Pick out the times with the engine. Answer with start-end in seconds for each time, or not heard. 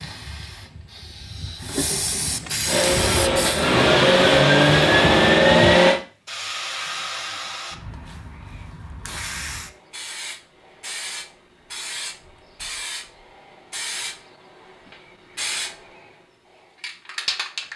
2.6-6.0.